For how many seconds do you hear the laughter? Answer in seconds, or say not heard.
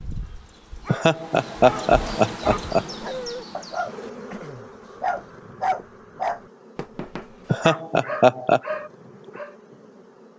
3 s.